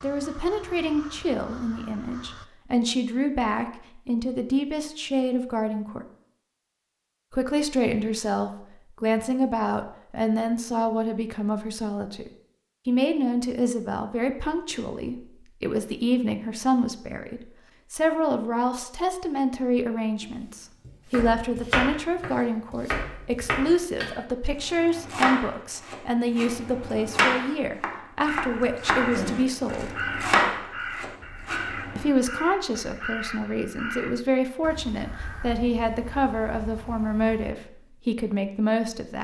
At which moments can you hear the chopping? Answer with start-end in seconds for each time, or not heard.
20.2-32.0.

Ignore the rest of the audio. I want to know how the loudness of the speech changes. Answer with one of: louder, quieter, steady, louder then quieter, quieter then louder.
steady.